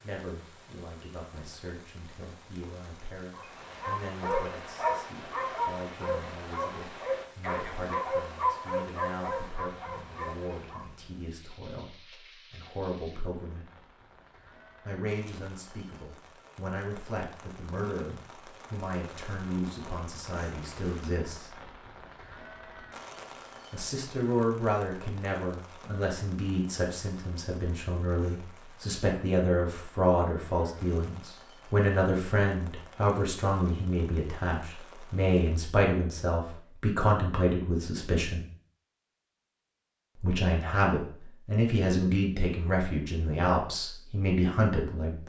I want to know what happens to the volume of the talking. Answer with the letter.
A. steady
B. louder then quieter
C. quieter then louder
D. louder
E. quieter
D.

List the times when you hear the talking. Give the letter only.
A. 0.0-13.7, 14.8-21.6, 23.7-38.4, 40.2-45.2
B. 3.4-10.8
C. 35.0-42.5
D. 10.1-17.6
A.